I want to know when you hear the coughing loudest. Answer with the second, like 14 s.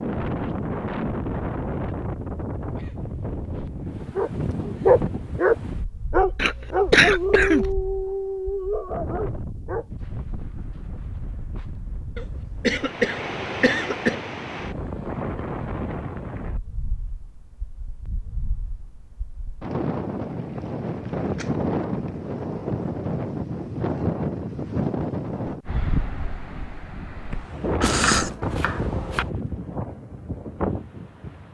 7 s.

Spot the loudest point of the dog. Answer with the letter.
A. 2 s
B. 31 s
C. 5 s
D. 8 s
C.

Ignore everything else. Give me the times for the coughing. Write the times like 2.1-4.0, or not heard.
6.3-7.8, 12.2-14.2, 27.8-28.4.